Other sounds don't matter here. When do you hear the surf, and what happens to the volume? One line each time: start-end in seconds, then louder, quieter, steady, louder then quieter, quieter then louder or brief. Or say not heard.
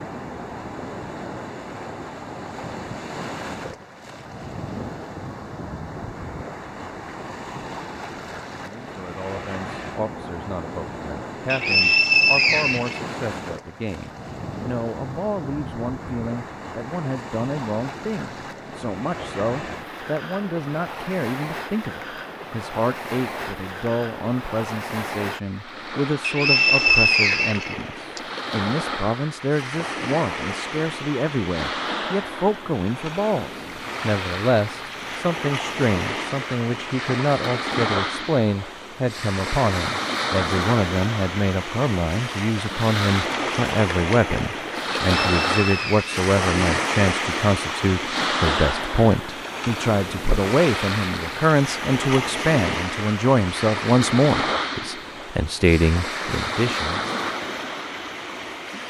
0.0-58.8 louder.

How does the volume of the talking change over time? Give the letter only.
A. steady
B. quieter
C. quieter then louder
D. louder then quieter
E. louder
E.